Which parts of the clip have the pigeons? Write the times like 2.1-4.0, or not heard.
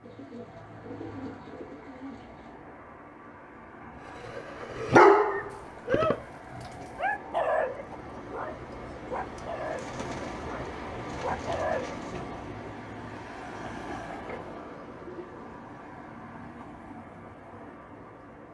0.0-2.6, 5.5-7.2, 9.7-12.2, 14.1-15.6.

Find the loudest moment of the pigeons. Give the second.
6 s.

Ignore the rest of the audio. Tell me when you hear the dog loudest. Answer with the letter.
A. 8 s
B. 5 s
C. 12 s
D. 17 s
B.